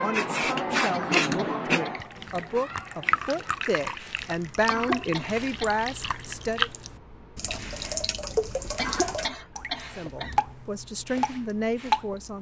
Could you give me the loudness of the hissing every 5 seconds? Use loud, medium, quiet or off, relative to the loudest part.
loud, quiet, quiet.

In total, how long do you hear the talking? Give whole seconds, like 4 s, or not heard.
9 s.